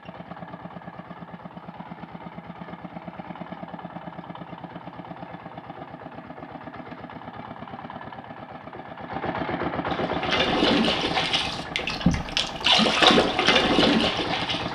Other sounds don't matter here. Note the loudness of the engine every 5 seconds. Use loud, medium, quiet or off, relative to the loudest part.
medium, loud, loud.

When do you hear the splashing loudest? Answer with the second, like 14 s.
13 s.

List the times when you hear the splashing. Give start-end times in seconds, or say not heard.
9.8-14.7.